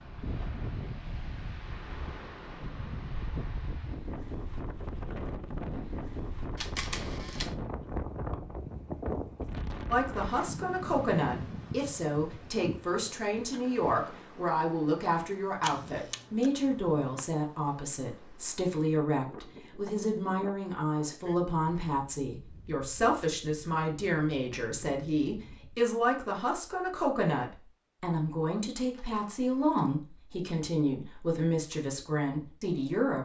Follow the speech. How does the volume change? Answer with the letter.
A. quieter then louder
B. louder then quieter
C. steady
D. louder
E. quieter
C.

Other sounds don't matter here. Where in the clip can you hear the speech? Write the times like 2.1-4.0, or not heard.
9.9-33.2.